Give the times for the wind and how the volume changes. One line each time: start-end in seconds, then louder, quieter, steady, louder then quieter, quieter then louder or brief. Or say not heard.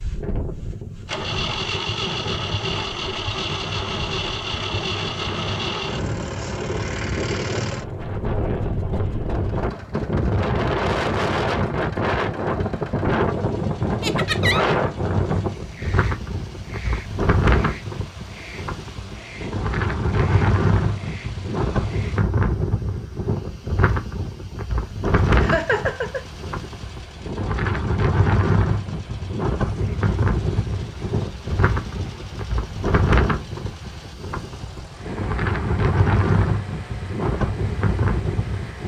0.0-38.8 louder.